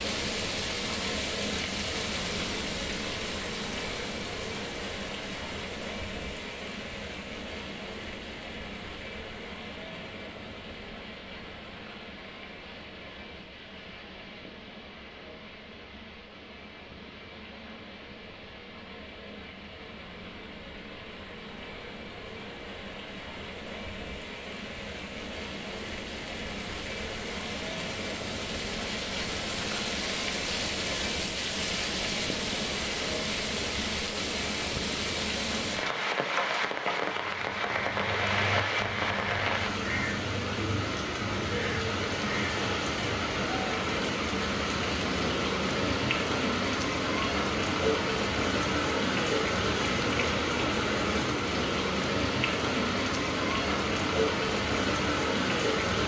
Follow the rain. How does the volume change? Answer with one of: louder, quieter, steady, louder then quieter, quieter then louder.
quieter then louder.